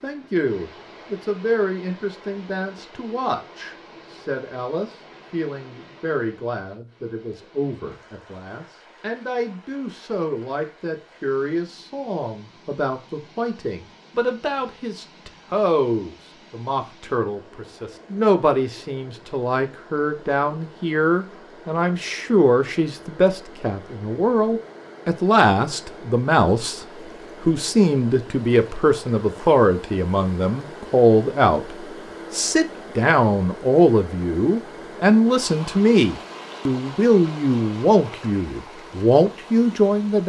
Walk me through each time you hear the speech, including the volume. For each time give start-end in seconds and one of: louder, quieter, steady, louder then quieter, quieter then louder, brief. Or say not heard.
0.0-40.2 louder.